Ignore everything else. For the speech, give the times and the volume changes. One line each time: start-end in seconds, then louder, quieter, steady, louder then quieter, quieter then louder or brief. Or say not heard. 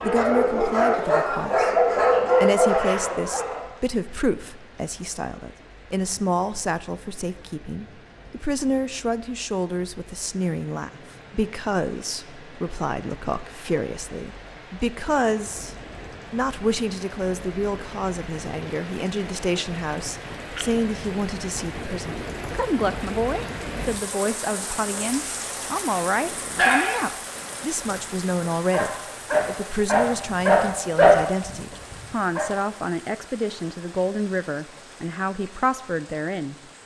0.0-1.7 brief
2.4-36.5 steady.